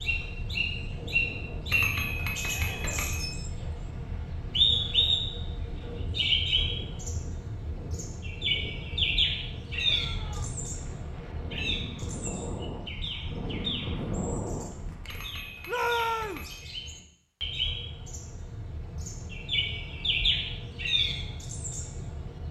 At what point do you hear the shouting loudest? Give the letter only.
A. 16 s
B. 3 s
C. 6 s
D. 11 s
A.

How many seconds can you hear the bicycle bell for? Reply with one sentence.
You can hear the bicycle bell for 3 seconds altogether.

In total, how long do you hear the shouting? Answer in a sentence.
The shouting can be heard for 2 seconds in total.